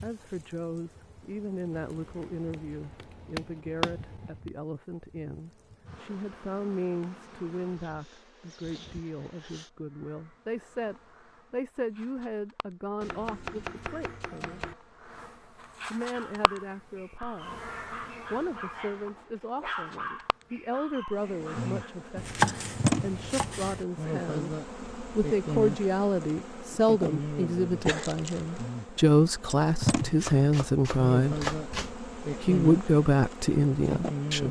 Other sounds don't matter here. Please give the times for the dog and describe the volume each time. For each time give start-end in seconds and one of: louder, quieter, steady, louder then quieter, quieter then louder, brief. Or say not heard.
16.1-21.9 louder then quieter.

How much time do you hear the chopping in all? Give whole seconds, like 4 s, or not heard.
8 s.